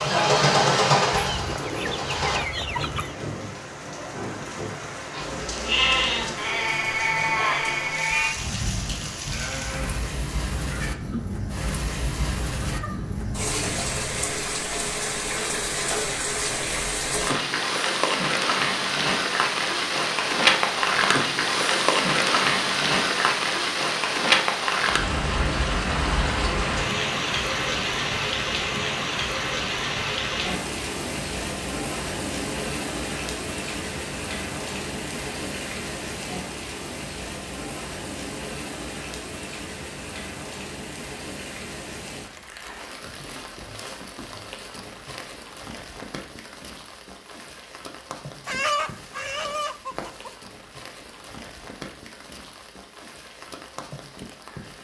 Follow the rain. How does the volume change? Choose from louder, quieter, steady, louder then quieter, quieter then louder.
louder then quieter.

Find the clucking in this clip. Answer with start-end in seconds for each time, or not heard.
1.1-3.2, 48.5-50.3.